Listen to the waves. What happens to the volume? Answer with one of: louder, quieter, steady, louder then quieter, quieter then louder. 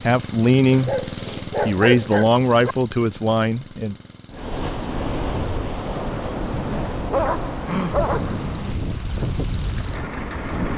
steady.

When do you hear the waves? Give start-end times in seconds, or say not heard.
4.3-10.7.